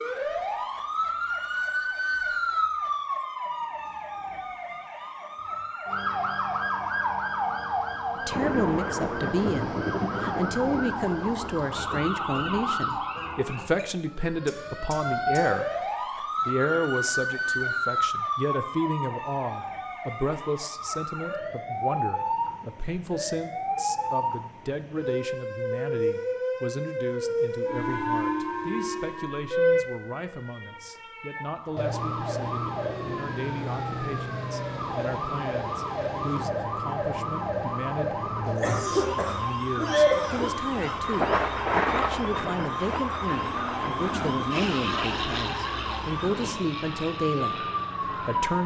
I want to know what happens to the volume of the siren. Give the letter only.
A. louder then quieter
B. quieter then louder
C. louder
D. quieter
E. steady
E.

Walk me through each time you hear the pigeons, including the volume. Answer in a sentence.
The pigeons can't be heard in this clip.